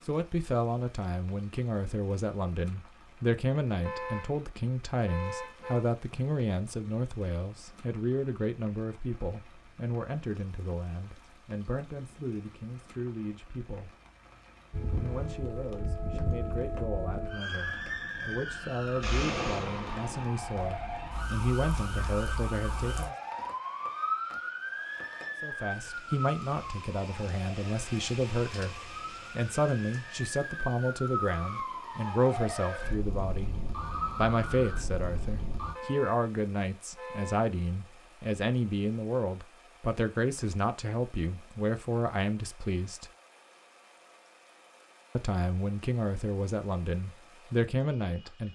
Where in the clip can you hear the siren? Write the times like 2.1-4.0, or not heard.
14.7-35.8.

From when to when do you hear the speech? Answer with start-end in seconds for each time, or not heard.
0.1-13.9, 15.0-23.1, 25.4-33.5, 34.1-43.1, 45.1-48.4.